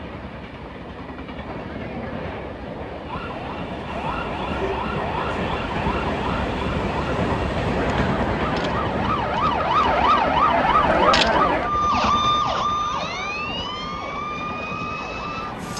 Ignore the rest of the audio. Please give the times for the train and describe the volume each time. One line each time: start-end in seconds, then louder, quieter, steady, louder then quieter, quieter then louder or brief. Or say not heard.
0.0-15.7 louder then quieter.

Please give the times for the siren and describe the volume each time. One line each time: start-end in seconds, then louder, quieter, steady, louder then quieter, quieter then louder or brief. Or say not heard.
3.0-15.7 louder then quieter.